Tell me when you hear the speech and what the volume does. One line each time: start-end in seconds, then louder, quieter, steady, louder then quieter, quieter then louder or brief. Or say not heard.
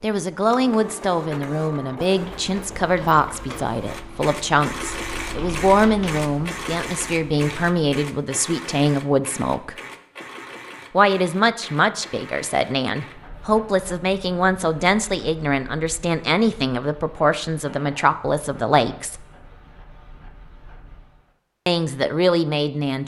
0.0-9.8 steady
10.9-19.2 steady
21.6-23.0 brief.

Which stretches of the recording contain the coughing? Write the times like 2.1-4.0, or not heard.
not heard.